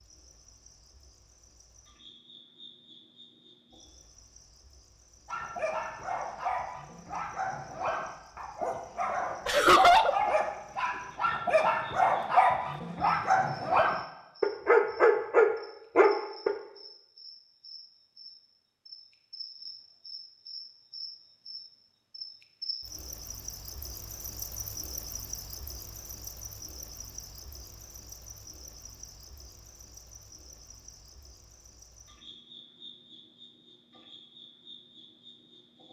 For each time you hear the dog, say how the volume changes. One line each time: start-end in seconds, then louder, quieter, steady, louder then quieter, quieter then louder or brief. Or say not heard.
5.2-16.6 louder.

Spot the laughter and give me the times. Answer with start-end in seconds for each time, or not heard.
9.4-10.2.